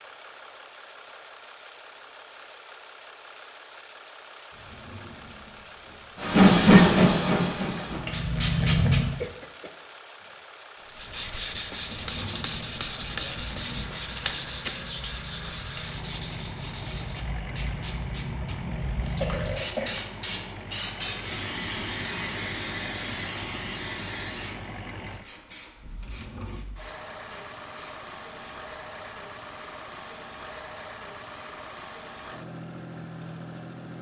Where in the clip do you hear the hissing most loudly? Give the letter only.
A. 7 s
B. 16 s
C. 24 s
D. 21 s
A.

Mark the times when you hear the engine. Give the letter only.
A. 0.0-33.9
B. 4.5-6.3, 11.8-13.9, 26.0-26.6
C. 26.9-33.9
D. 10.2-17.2
A.